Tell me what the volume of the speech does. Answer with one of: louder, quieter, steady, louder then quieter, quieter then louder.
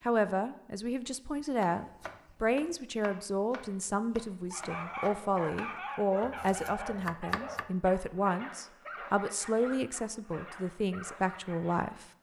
steady.